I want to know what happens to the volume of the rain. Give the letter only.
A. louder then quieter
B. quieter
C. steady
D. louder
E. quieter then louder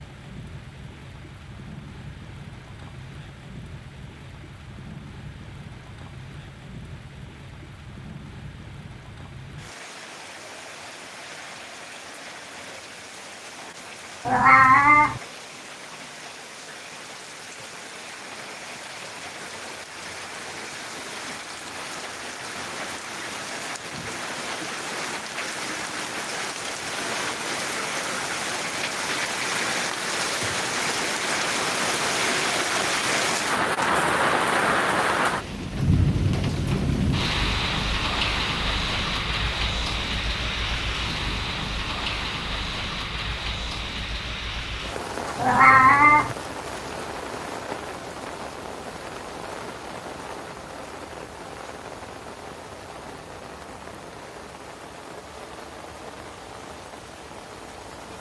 A.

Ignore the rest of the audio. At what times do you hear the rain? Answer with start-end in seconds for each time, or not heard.
0.0-58.1.